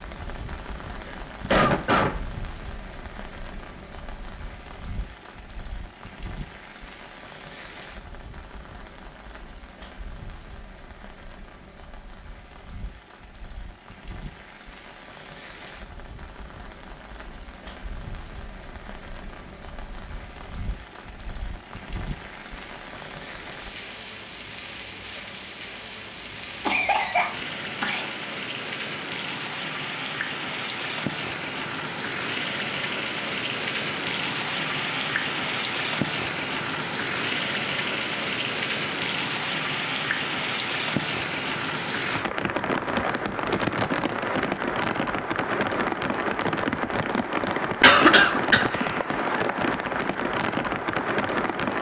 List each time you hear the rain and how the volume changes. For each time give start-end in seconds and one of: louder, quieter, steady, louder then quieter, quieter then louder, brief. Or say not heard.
0.0-51.7 louder.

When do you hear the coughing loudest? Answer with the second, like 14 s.
48 s.